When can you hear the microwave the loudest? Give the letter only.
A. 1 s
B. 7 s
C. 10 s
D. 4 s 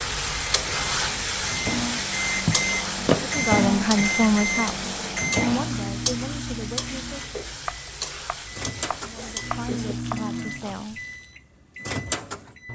D.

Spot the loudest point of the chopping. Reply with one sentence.
The volume of the chopping peaks at 3 seconds.